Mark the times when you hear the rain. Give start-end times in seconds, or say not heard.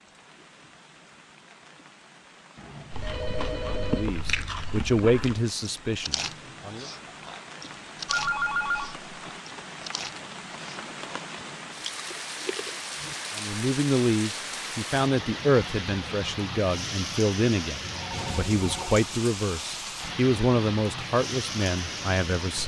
0.0-22.6.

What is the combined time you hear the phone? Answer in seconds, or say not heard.
4 s.